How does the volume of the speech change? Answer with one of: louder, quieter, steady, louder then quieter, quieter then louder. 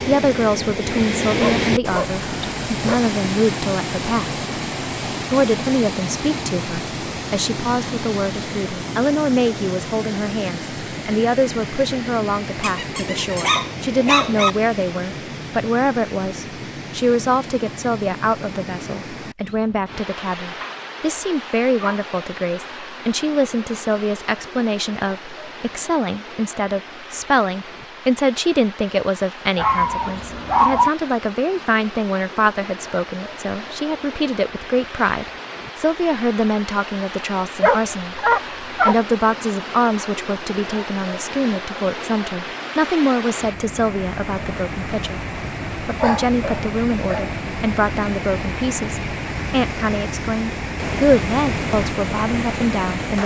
steady.